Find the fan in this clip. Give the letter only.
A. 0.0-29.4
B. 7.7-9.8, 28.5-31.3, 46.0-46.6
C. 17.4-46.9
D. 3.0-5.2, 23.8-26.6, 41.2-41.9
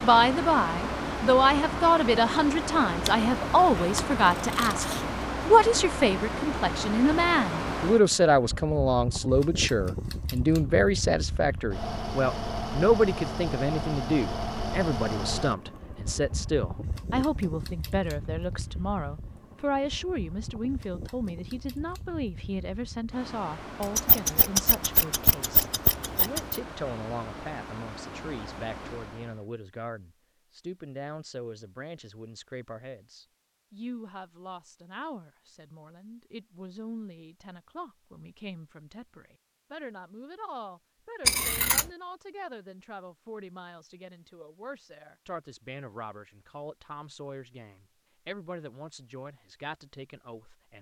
A.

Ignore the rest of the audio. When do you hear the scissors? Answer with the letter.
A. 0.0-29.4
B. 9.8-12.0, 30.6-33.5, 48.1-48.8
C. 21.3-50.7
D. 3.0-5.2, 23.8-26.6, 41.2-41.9
D.